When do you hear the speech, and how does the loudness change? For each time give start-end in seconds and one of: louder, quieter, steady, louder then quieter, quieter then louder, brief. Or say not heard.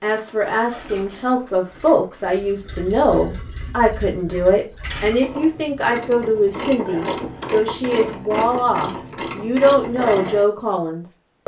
0.0-11.4 steady.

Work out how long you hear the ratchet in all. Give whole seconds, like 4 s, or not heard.
5 s.